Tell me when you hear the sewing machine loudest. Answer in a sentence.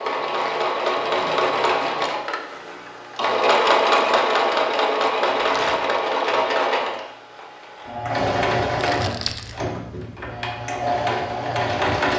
The volume of the sewing machine peaks at 4 seconds.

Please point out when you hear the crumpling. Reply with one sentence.
The crumpling can be heard from 0.1 to 2.2 s, from 5.3 to 5.9 s and from 8.8 to 9.6 s.